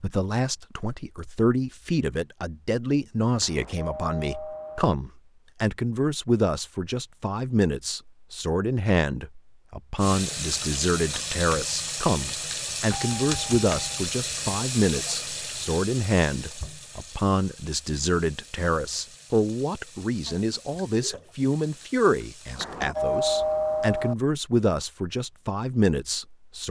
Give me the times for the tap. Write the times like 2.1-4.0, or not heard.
9.9-22.6.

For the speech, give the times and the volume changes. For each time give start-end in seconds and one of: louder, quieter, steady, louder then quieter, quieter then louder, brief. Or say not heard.
0.0-26.6 steady.